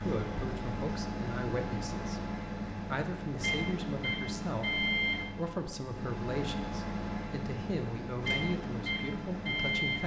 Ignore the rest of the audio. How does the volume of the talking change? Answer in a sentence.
The loudness of the talking stays about the same.